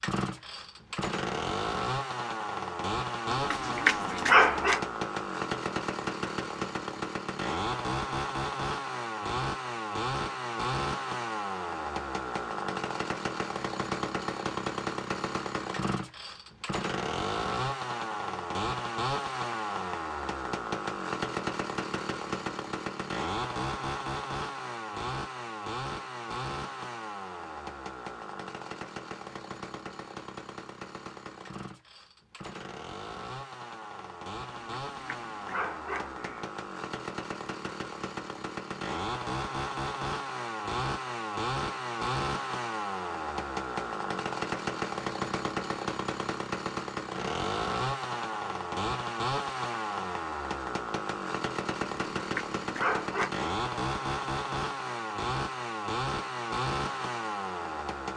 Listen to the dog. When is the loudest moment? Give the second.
4 s.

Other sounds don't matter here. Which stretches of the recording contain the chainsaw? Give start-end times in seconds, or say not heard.
0.0-58.1.